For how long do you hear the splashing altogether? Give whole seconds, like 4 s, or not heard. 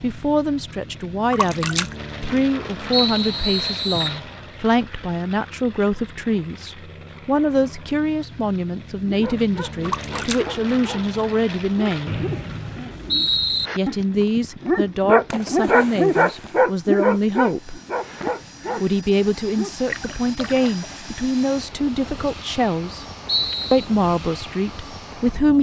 4 s.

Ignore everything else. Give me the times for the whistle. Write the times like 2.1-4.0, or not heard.
2.9-4.2, 12.1-13.7, 23.2-23.9.